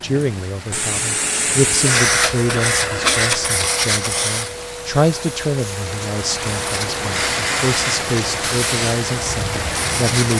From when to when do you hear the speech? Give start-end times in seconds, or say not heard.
0.0-10.3.